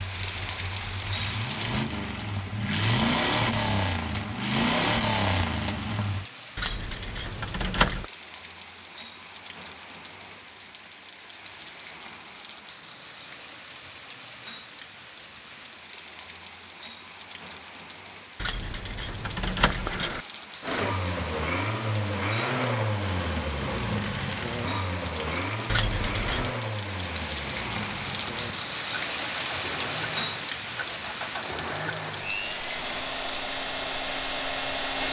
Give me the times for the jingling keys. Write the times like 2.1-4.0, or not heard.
6.5-8.1, 18.4-20.2, 25.6-26.6.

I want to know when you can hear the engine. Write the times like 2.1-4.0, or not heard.
0.0-6.2, 20.6-35.0.